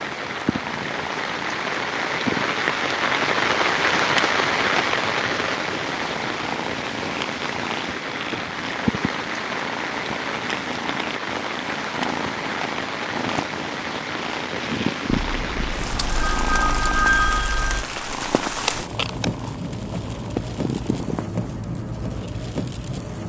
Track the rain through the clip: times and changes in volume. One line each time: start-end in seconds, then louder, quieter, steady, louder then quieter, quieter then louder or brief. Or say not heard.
0.0-23.2 quieter.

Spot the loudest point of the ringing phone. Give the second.
17 s.